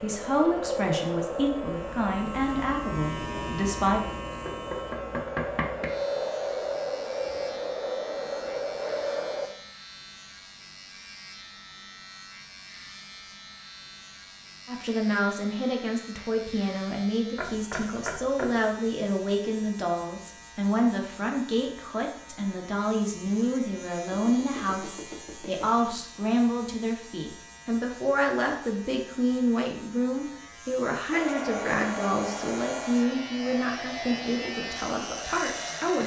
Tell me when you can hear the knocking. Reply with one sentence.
The knocking can be heard from 4.5 to 5.9 s, from 17.4 to 18.5 s and from 24.1 to 25.9 s.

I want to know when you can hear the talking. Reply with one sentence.
You can hear the talking from 0.0 to 4.0 s and from 14.7 to 36.0 s.